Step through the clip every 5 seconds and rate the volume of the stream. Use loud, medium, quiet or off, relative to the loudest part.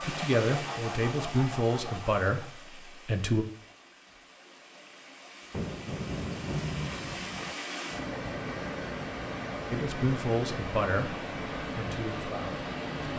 medium, loud, loud.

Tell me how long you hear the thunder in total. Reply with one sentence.
You can hear the thunder for 2 seconds altogether.